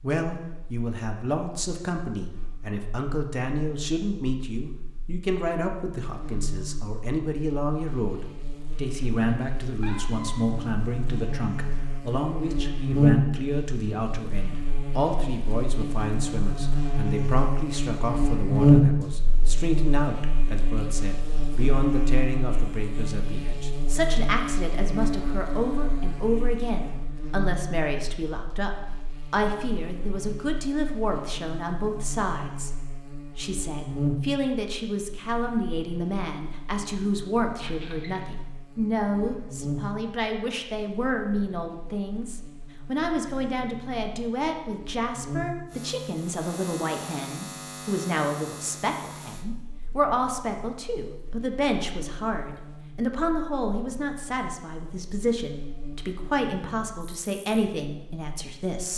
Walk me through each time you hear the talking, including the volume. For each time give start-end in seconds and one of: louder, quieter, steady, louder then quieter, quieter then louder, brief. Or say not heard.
0.0-58.9 steady.